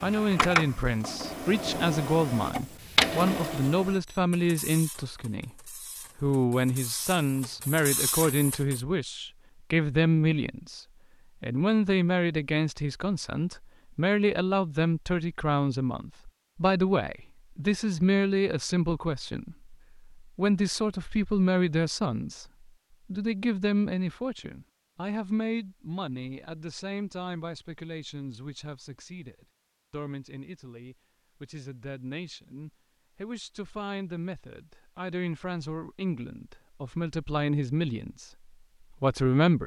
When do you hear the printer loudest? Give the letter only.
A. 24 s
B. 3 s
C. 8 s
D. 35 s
B.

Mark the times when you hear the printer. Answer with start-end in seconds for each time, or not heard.
0.0-8.8.